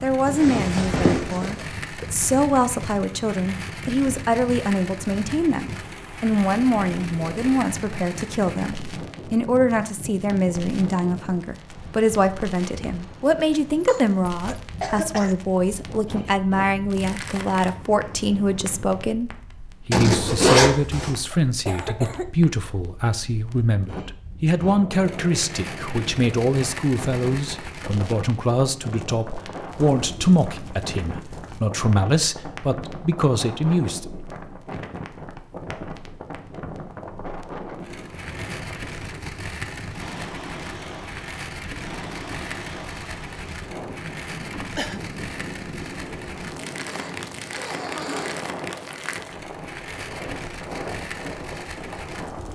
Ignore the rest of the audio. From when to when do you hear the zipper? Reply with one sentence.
You can hear the zipper from 0.2 to 1.6 s, from 19.9 to 21.1 s and from 46.9 to 48.4 s.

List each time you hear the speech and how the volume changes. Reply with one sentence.
You can hear the speech from 0.0 to 34.1 s, at a steady volume.